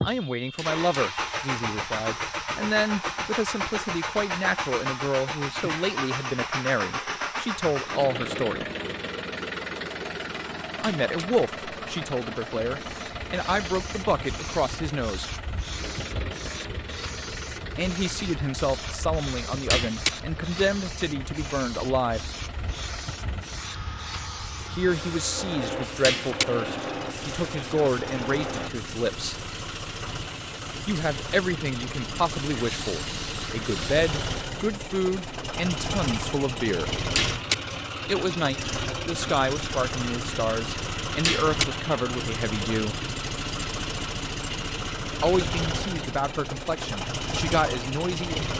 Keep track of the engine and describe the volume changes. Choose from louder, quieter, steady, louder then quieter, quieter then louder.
quieter then louder.